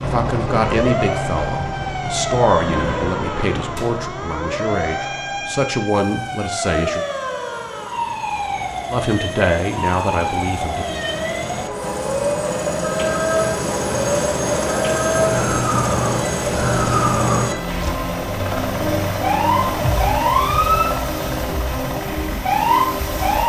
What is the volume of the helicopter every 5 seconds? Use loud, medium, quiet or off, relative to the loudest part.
medium, quiet, loud, loud, loud.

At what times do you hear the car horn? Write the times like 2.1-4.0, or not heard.
not heard.